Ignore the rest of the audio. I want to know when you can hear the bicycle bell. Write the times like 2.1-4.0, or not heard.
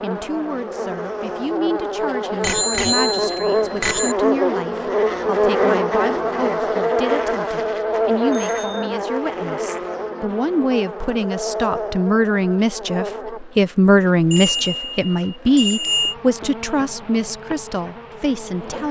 2.4-4.2, 8.3-8.9, 14.3-16.1.